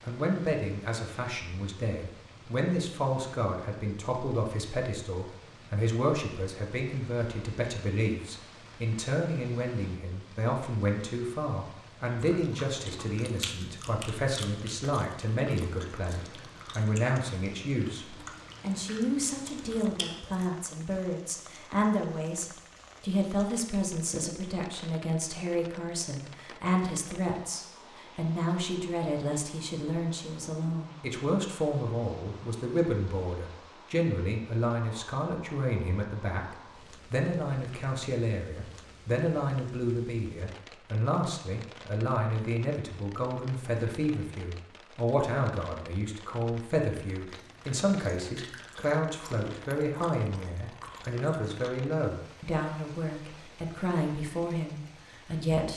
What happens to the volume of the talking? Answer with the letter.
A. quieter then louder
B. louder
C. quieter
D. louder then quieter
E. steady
E.